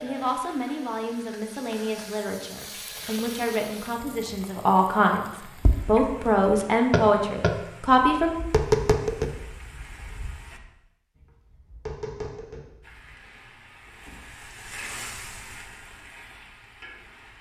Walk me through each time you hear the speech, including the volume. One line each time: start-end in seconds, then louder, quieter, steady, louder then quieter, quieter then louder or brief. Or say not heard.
0.0-8.3 louder.